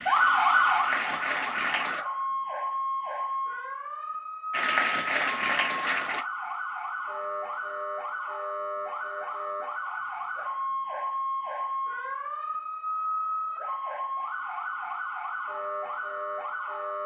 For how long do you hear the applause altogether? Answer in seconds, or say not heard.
4 s.